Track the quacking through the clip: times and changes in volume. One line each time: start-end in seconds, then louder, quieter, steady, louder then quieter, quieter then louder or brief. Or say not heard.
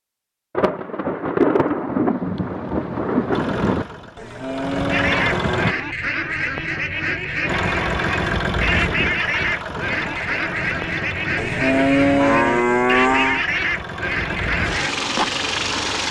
4.9-14.9 steady.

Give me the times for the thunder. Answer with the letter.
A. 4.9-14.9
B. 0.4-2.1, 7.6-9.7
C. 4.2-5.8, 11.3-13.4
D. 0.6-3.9
D.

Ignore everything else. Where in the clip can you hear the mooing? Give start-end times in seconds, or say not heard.
4.2-5.8, 11.3-13.4.